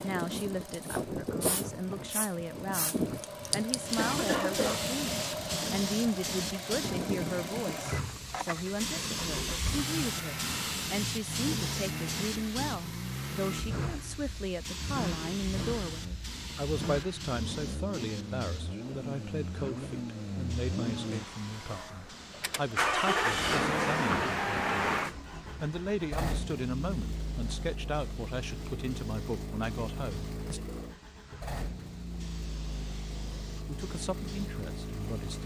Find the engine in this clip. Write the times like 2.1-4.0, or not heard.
0.0-35.4.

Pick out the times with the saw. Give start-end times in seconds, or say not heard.
not heard.